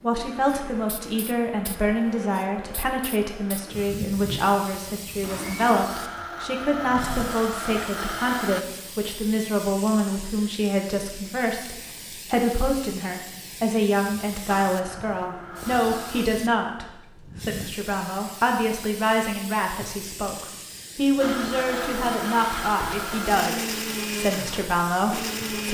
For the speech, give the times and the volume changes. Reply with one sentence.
The speech can be heard from 0.0 to 25.6 s, at a steady volume.